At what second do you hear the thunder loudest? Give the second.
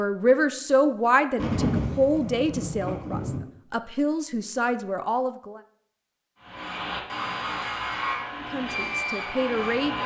2 s.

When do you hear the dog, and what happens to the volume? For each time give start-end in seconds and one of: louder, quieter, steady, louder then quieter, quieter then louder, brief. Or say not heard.
not heard.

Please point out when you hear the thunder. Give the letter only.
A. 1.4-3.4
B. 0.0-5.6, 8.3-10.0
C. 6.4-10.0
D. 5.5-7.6
A.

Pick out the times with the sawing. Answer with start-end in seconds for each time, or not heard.
6.4-10.0.